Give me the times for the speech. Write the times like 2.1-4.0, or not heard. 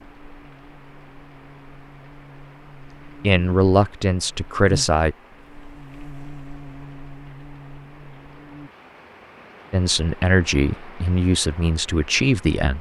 3.2-5.2, 9.7-12.7.